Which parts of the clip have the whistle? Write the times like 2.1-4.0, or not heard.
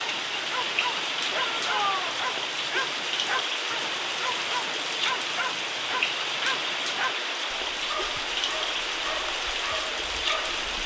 not heard.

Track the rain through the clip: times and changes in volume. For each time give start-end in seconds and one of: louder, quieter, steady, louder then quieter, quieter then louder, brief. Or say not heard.
0.0-10.8 steady.